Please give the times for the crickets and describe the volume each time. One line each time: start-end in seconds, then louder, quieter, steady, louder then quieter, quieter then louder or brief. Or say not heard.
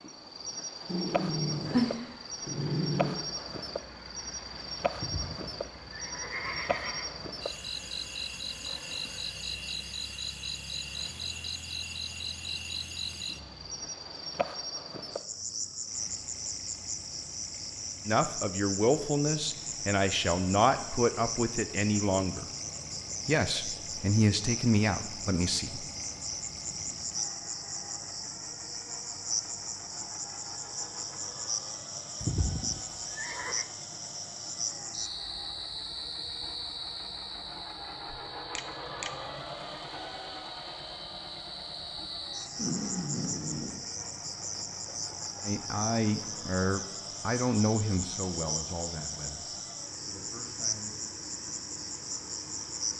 0.0-52.9 steady.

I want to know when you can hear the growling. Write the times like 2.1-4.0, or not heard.
0.8-3.2, 42.5-43.8.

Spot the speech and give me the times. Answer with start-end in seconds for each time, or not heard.
18.1-22.4, 23.2-25.9, 45.4-51.0.